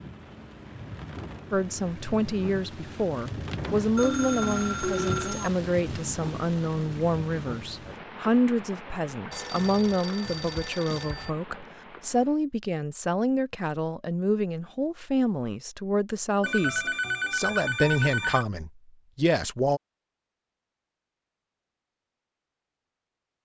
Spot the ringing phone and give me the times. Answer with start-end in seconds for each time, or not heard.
4.0-5.5, 9.3-11.3, 16.4-18.4.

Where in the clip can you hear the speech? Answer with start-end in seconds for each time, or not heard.
1.5-19.8.